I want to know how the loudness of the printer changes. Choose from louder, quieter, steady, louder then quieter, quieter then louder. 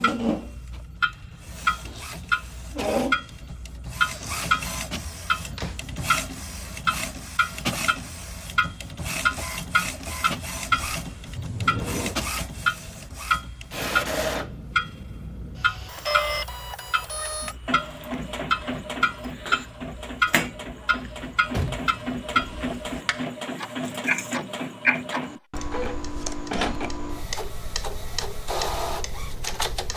steady.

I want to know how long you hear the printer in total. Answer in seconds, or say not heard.
30 s.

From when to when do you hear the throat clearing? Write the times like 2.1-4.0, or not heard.
not heard.